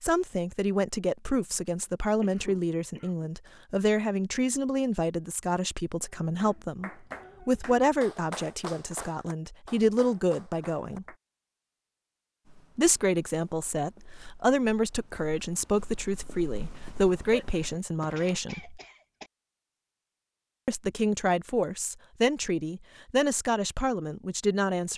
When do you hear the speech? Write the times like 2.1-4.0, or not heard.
0.0-11.1, 12.8-18.8, 20.6-24.9.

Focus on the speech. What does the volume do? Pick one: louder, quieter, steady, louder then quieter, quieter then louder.
steady.